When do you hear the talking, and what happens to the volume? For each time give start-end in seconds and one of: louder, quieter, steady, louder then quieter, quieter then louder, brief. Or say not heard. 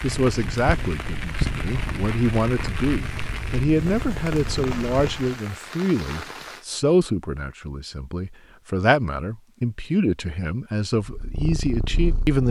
0.0-12.4 steady.